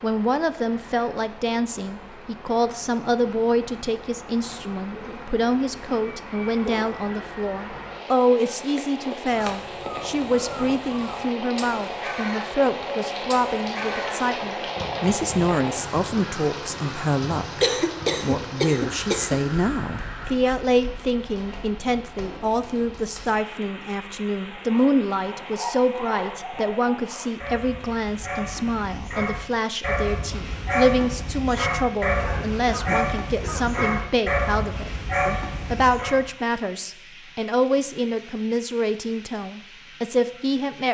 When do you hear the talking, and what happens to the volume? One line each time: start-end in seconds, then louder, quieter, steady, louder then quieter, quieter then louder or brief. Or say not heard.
0.0-40.8 steady.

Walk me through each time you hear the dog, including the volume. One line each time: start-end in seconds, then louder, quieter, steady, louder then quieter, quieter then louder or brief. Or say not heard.
24.5-36.2 louder.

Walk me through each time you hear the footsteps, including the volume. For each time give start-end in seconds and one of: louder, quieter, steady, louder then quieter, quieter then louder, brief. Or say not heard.
not heard.